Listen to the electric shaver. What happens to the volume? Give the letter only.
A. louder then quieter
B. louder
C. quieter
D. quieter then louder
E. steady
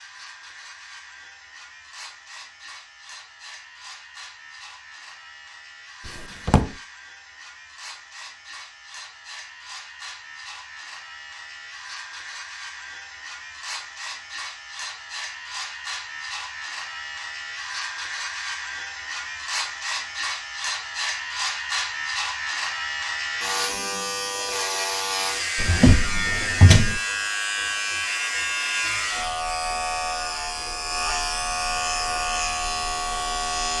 B.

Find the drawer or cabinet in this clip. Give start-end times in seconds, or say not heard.
6.0-6.7, 25.6-27.0.